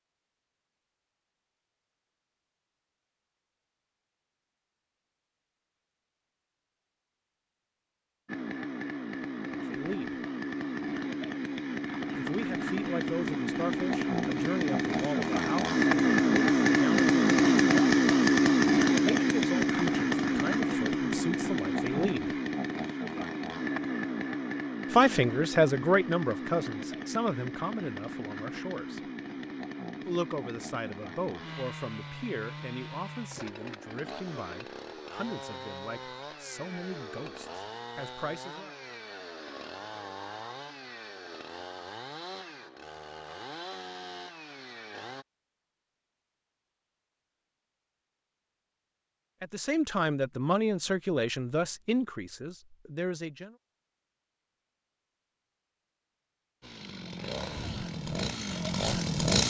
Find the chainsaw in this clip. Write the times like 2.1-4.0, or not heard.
8.2-45.2, 56.6-59.4.